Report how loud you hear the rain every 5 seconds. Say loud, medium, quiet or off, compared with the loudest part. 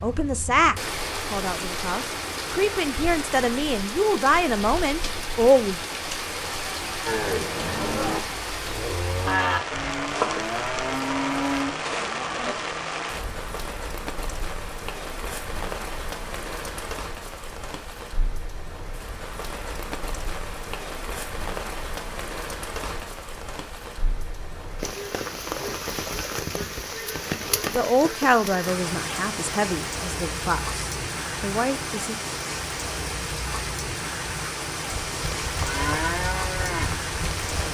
loud, loud, loud, medium, medium, loud, loud, loud.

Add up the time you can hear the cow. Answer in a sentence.
You can hear the cow for 8 seconds altogether.